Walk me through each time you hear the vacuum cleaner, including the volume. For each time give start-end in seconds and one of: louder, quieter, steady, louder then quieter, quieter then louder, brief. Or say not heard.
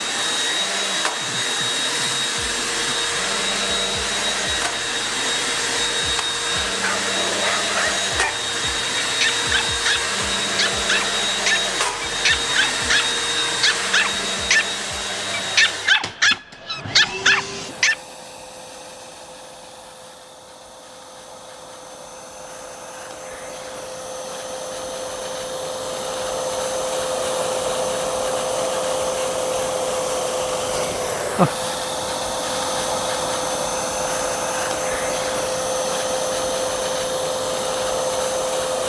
0.0-38.8 quieter then louder.